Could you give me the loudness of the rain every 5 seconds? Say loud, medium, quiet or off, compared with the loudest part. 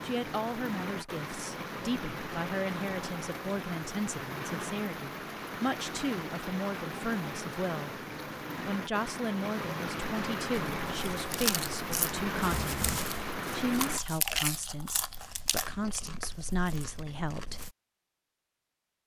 loud, loud, loud, off.